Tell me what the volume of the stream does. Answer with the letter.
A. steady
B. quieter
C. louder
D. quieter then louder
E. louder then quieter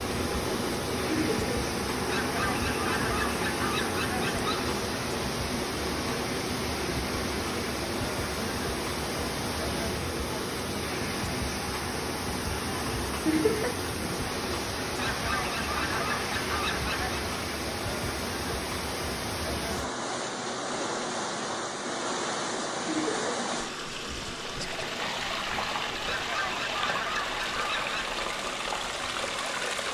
A.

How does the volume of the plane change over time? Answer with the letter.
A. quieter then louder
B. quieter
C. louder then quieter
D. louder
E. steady
B.